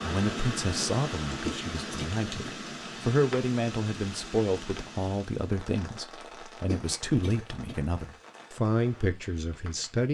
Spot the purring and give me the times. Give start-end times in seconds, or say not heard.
not heard.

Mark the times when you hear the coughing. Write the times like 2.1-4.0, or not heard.
1.4-2.7, 6.7-8.0.